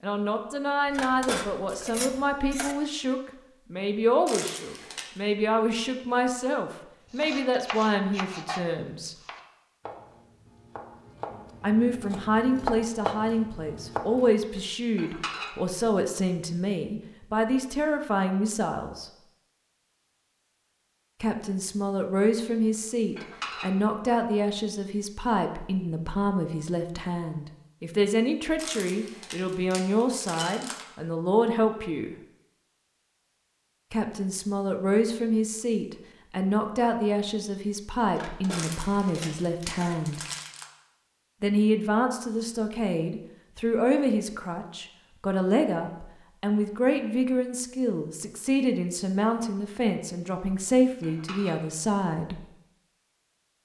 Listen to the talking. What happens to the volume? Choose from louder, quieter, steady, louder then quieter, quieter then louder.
steady.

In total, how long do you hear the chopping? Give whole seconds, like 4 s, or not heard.
7 s.